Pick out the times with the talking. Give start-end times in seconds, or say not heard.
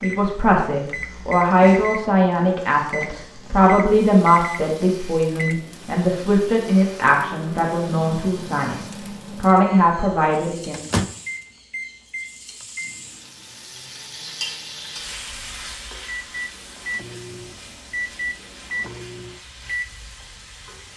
0.0-10.8.